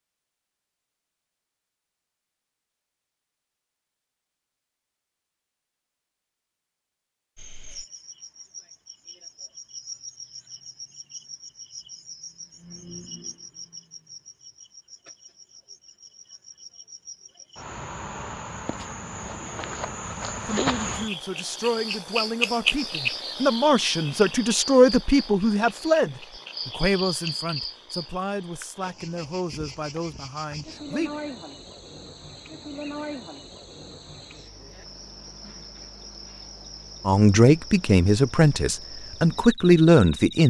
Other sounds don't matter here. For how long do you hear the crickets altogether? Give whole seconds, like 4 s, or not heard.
33 s.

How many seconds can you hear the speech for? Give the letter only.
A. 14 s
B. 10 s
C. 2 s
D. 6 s
A.